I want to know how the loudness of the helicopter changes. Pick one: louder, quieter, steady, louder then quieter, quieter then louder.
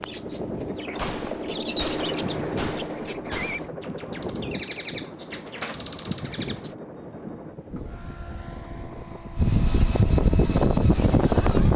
quieter.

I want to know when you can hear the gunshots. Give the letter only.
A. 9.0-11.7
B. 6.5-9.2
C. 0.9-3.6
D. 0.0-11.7
C.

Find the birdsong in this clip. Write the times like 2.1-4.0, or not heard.
0.0-6.8.